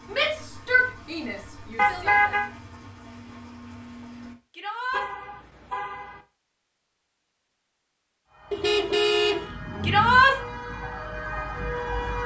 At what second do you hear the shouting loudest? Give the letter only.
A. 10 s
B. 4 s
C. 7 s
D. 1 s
A.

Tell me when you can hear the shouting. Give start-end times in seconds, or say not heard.
0.1-2.1, 4.5-5.0, 9.8-10.3.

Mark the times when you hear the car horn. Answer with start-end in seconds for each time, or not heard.
1.8-2.5, 4.9-6.2, 8.5-10.2.